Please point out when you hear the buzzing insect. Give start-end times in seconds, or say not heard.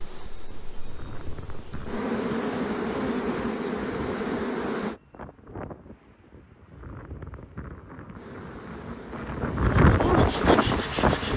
0.0-5.0, 8.1-11.3.